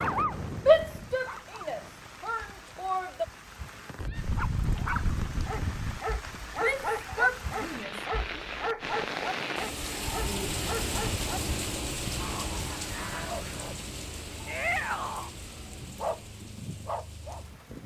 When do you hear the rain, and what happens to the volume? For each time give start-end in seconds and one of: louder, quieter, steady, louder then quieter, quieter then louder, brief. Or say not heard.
0.0-17.8 louder then quieter.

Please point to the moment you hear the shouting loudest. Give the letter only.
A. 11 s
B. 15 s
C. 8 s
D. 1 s
D.